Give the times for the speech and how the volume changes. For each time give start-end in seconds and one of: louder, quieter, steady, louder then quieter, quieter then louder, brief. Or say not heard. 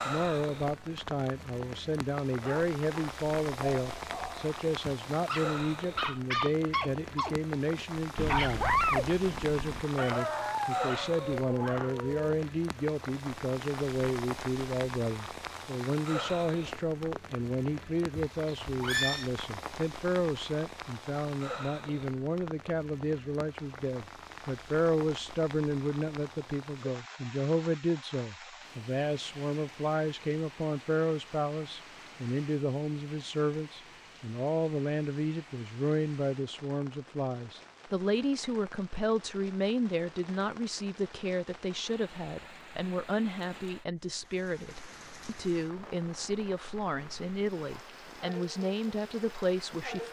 0.1-50.0 steady.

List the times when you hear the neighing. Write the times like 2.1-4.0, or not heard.
18.1-19.3.